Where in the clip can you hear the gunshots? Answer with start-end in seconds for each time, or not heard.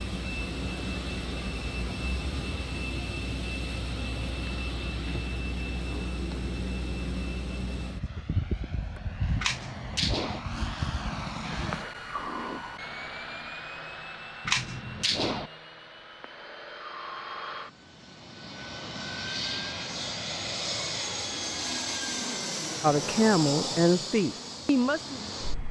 9.3-10.4, 14.4-15.5.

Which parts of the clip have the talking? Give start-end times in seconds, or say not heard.
22.8-25.4.